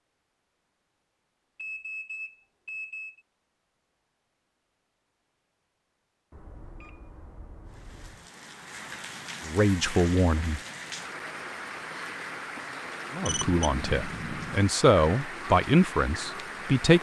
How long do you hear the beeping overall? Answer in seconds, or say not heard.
5 s.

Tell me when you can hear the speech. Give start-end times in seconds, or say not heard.
9.4-10.6, 13.1-16.9.